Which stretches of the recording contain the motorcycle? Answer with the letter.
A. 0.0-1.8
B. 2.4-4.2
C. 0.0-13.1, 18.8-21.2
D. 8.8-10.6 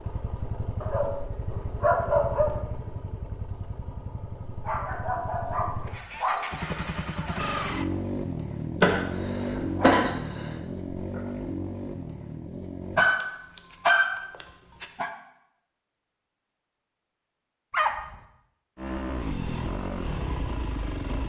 C.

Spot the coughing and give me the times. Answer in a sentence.
You can hear the coughing from 8.8 to 10.6 s.